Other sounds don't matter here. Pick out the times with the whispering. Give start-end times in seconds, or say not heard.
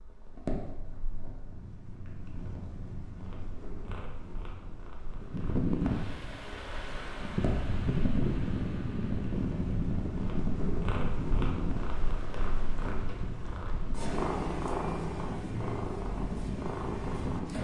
not heard.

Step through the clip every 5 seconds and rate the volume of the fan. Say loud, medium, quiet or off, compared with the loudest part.
off, loud, medium, medium.